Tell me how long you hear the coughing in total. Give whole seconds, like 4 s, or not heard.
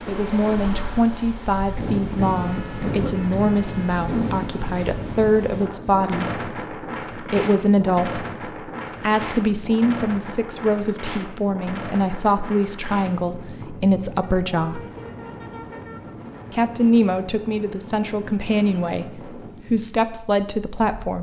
3 s.